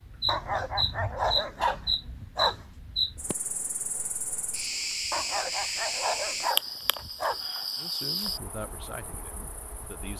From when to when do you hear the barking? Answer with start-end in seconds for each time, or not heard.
0.2-2.8, 5.1-7.4.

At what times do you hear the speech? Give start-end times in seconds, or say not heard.
7.8-10.1.